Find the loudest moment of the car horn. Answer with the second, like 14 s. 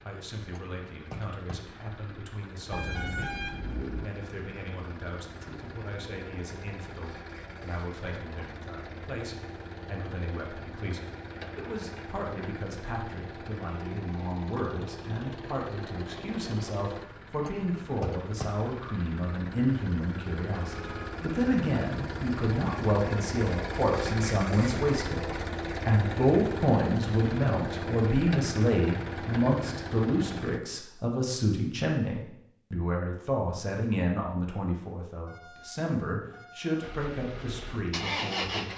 3 s.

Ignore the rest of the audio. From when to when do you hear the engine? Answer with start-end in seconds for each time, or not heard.
0.0-30.6, 36.8-38.7.